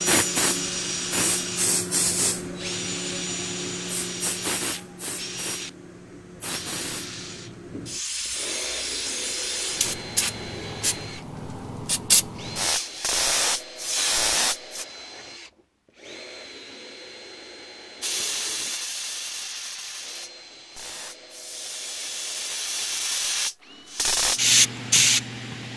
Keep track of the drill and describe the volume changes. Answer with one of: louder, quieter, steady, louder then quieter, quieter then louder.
quieter.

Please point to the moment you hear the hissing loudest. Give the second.
25 s.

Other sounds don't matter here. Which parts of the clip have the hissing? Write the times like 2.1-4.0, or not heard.
0.0-14.8, 18.0-25.7.